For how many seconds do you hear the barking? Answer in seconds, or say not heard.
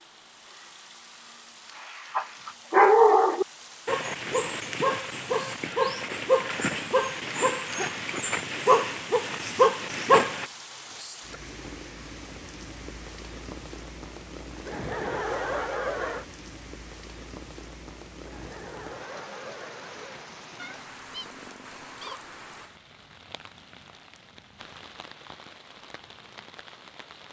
8 s.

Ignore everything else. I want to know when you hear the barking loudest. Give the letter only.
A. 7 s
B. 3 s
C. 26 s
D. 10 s
B.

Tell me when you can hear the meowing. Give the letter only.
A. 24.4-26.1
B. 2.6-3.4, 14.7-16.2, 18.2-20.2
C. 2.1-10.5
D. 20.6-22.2
D.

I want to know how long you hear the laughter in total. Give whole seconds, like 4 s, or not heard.
4 s.